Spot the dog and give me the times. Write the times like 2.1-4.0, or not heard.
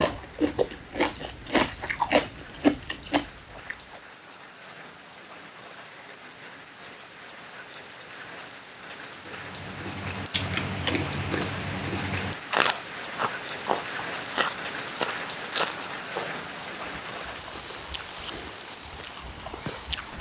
not heard.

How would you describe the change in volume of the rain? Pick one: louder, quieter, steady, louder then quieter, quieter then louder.
louder.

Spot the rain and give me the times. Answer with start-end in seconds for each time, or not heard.
0.0-20.1.